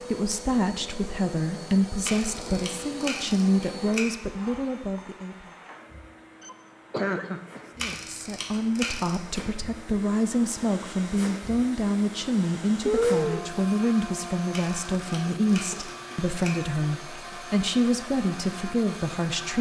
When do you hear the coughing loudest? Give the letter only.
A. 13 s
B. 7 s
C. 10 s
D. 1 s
A.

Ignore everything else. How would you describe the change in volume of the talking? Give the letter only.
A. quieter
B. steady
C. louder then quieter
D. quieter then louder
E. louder
B.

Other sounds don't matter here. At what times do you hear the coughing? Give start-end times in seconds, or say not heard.
6.4-8.0, 12.8-13.4.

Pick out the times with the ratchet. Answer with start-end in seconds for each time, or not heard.
2.0-4.0, 7.8-9.4, 14.5-16.5.